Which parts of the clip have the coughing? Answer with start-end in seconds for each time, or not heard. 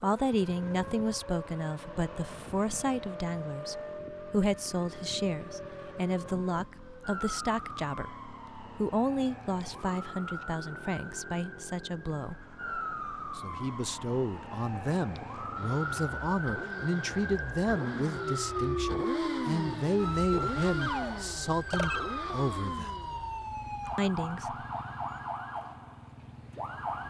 not heard.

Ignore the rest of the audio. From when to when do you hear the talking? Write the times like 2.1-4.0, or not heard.
0.0-12.4, 13.3-23.1, 23.9-24.6.